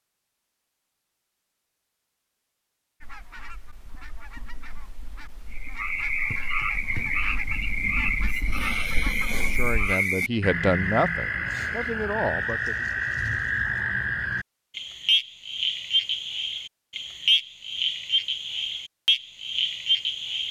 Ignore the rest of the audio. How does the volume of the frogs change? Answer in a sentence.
The loudness of the frogs stays about the same.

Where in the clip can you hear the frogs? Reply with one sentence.
The frogs can be heard from 5.5 to 20.4 s.